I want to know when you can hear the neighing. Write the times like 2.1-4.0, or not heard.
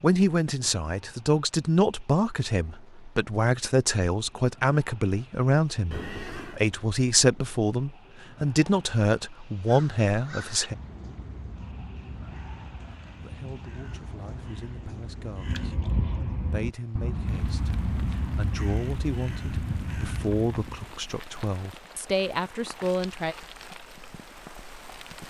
5.9-6.6.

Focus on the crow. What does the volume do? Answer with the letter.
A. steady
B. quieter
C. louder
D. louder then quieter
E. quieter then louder
C.